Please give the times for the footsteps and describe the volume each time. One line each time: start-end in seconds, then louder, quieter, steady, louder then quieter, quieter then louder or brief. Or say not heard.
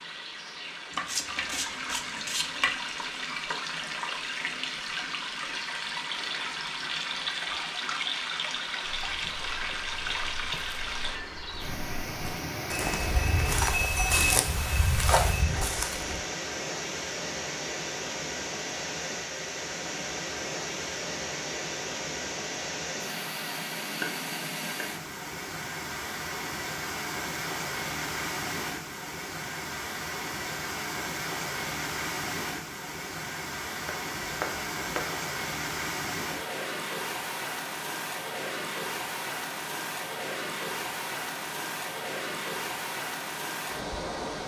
8.8-16.2 louder.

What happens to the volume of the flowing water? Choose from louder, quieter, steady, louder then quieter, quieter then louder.
steady.